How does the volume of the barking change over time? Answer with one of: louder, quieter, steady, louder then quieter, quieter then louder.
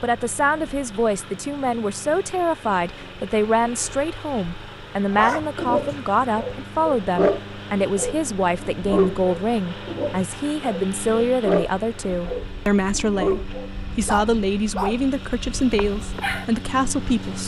quieter.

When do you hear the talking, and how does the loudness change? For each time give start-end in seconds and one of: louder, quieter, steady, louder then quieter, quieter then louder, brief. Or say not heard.
0.0-17.4 steady.